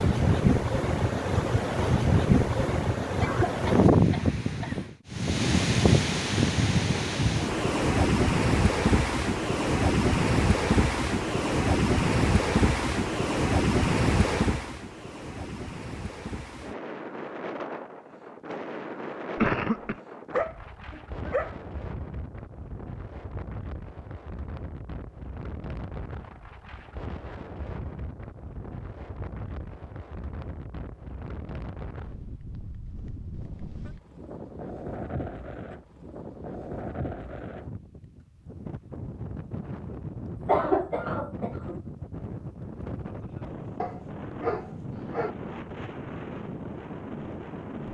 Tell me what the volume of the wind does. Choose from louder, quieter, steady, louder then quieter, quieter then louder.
quieter.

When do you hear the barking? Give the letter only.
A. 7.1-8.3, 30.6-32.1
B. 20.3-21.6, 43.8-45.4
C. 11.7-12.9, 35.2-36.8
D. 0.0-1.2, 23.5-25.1
B.